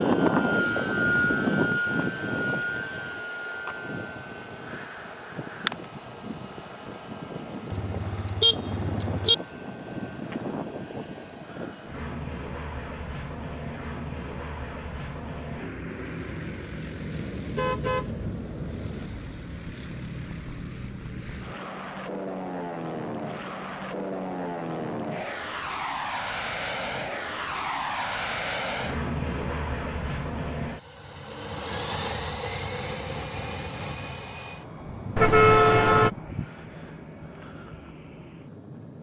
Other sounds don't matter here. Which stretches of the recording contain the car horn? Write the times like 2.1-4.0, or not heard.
7.7-9.3, 17.1-19.1, 35.1-36.1.